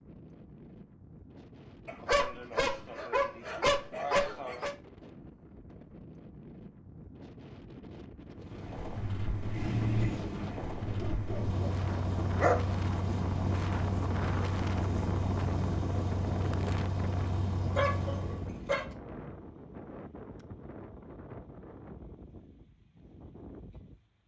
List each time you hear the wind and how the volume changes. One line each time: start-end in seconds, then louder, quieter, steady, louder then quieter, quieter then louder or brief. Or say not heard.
0.0-24.2 louder then quieter.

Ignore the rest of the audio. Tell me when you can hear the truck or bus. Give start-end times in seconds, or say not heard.
8.4-18.6.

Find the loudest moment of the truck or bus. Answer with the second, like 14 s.
10 s.